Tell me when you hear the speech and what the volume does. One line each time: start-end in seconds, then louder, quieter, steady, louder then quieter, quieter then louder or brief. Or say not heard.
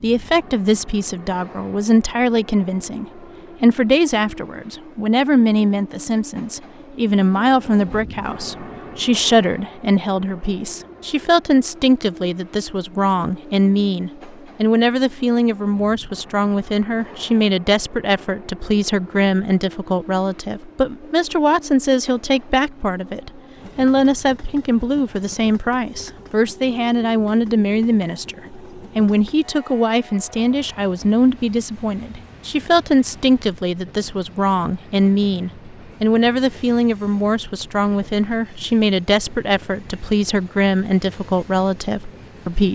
0.0-42.7 steady.